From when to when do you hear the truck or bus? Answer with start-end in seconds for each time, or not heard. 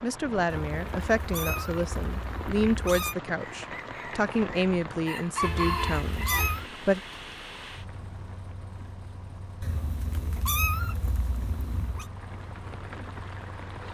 5.3-13.9.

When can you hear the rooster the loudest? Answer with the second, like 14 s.
6 s.